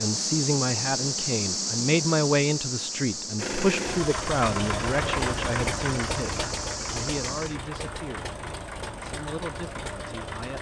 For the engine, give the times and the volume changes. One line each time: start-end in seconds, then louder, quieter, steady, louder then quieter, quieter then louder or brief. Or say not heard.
3.4-10.5 quieter.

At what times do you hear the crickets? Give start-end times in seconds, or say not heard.
0.0-7.6.